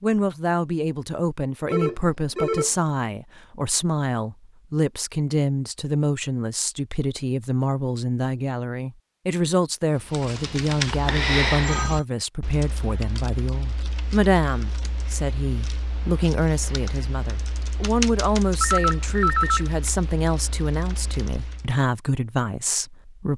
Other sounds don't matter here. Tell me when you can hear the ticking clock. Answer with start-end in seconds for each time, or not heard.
not heard.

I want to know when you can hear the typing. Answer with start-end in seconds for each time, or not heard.
10.0-21.8.